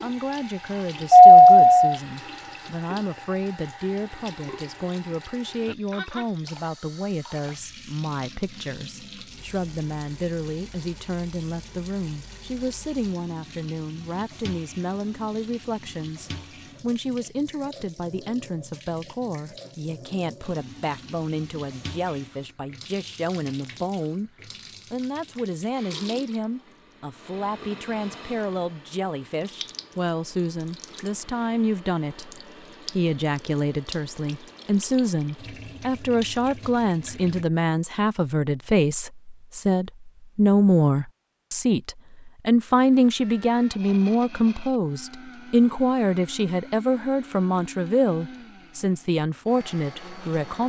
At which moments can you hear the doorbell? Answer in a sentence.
You can hear the doorbell from 1.1 to 1.9 s.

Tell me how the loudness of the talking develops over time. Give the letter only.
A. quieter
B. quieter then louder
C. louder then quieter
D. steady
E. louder
E.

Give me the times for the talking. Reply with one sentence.
You can hear the talking from 0.0 to 24.3 s and from 24.9 to 50.6 s.